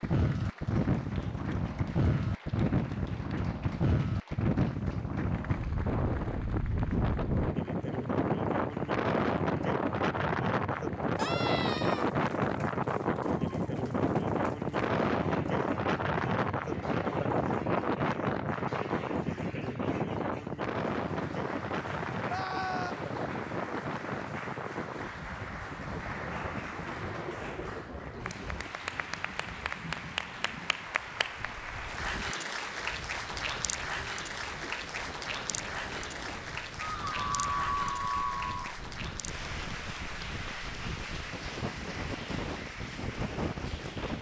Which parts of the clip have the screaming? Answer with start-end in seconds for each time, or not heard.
11.2-12.1, 22.2-22.9, 36.8-38.8.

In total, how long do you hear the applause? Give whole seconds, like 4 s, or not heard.
44 s.